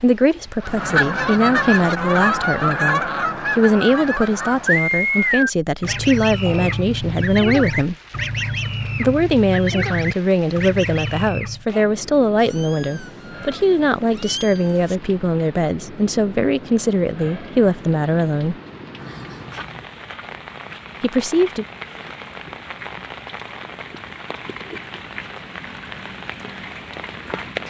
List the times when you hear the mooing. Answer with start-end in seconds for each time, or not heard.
not heard.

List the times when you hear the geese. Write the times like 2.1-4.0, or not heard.
0.6-11.7.